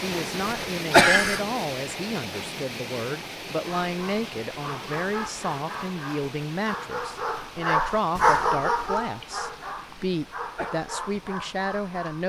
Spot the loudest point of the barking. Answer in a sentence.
The volume of the barking peaks at 8 seconds.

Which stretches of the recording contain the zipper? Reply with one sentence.
The zipper can't be heard in this clip.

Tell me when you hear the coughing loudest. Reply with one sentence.
The loudest moment of the coughing is at 1 second.